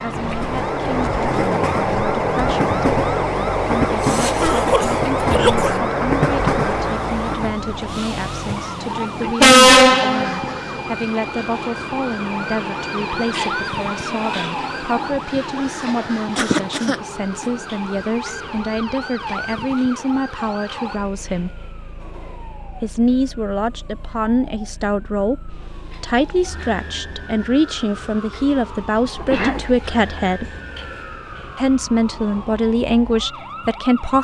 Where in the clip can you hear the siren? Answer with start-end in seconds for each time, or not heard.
0.0-34.1.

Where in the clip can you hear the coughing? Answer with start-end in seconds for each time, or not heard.
4.0-5.8, 16.4-17.4, 29.1-29.8.